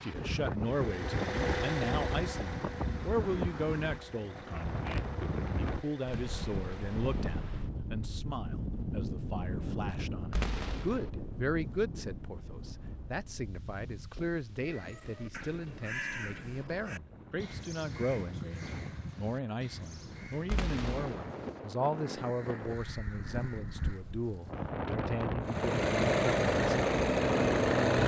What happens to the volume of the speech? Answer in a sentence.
The loudness of the speech stays about the same.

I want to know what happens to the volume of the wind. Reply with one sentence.
The loudness of the wind goes down, then up.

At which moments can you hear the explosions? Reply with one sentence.
You can hear the explosions from 10.3 to 11.1 s and from 20.4 to 21.2 s.